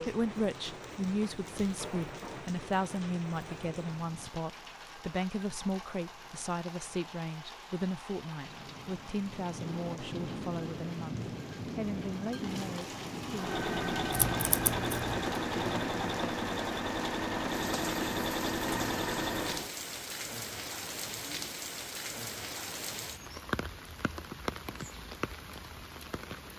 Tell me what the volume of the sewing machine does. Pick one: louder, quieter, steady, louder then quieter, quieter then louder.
steady.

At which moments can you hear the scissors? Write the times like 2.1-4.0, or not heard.
14.1-15.3.